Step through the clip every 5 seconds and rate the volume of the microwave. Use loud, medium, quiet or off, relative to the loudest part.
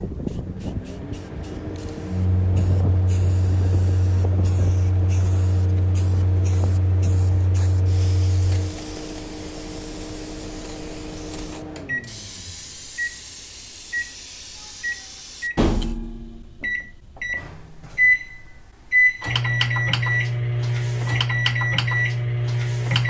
medium, medium, medium, loud, loud.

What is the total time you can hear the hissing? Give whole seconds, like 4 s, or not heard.
16 s.